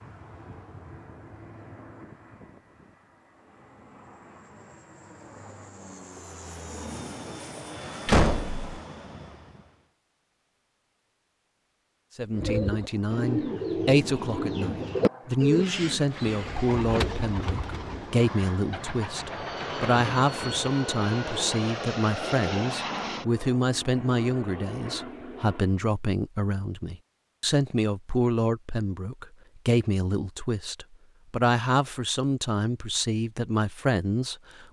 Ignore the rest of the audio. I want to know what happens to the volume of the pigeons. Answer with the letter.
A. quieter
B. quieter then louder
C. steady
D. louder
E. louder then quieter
A.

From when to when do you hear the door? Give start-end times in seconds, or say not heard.
8.1-8.8.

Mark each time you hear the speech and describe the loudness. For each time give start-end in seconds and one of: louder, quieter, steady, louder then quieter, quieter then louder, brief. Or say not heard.
12.2-34.6 steady.